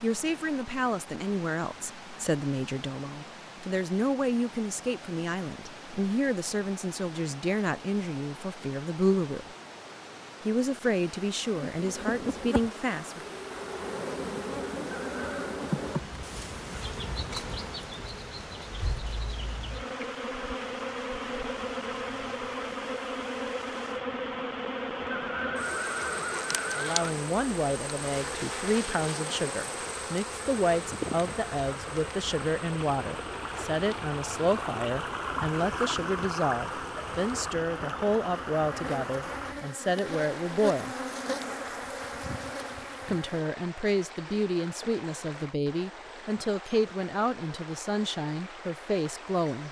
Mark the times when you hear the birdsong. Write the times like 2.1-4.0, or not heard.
not heard.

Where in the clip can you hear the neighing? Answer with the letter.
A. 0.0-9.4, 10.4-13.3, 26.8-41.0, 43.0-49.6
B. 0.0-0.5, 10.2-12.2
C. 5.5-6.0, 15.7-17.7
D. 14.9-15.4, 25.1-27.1
D.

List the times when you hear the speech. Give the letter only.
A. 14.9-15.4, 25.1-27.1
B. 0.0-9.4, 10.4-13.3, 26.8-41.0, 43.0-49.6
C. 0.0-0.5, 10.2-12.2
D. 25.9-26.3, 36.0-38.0
B.